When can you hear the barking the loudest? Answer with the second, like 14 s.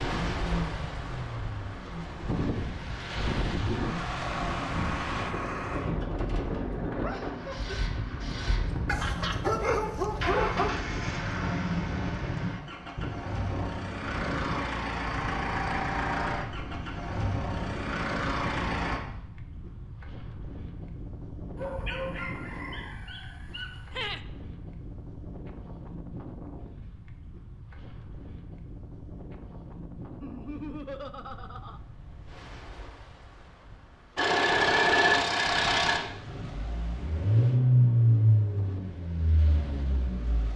10 s.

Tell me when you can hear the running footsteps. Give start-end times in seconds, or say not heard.
not heard.